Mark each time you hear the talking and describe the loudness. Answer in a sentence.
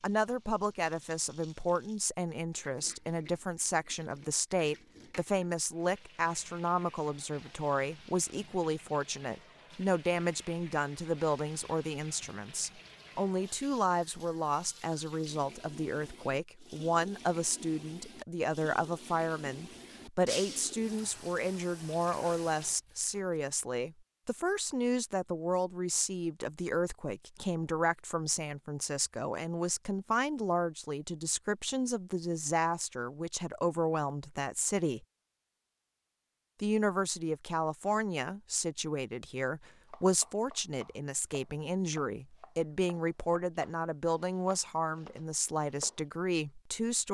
The talking can be heard from 0.0 to 35.0 s, at a steady volume; and from 36.6 to 47.1 s, at a steady volume.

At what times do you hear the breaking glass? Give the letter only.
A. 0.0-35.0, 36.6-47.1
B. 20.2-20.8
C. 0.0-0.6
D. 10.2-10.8
B.